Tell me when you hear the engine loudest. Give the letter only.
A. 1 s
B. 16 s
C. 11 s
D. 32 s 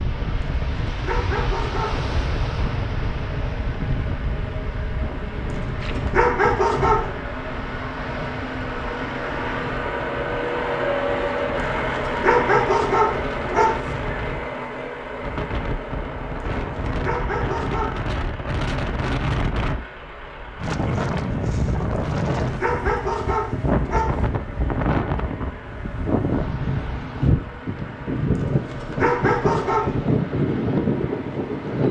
C.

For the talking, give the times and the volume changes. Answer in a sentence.
The talking can't be heard in this clip.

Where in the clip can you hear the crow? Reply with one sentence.
The crow can't be heard in this clip.